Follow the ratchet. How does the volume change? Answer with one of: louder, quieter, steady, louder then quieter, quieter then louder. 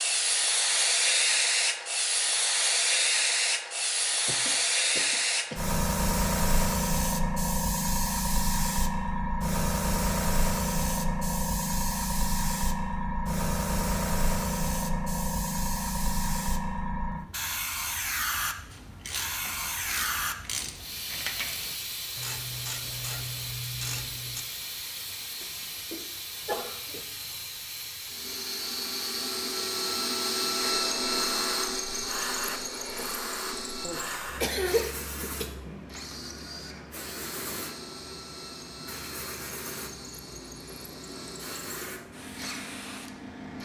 steady.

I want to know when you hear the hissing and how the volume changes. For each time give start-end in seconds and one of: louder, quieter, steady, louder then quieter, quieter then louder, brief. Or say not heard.
0.0-43.6 quieter.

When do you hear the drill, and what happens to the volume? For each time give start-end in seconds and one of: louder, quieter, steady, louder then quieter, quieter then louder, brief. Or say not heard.
28.1-43.6 quieter.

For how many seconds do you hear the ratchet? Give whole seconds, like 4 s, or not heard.
6 s.